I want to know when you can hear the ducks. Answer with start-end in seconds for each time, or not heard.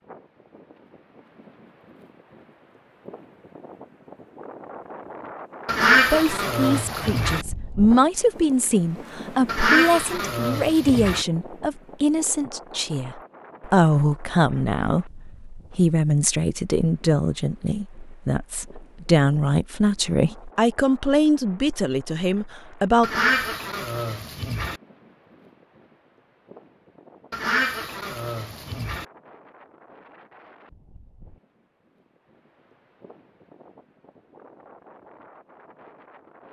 5.7-7.5, 9.4-11.2, 23.0-24.8, 27.3-29.1.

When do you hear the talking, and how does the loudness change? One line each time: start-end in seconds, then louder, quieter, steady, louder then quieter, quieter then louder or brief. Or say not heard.
6.1-23.1 steady.